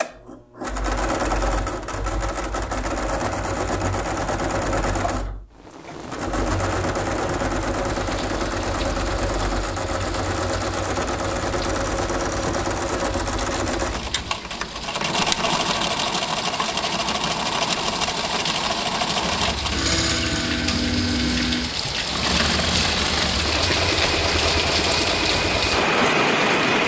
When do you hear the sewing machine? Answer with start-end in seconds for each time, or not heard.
0.0-26.8.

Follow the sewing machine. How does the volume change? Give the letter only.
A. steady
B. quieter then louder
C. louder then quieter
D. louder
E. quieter
A.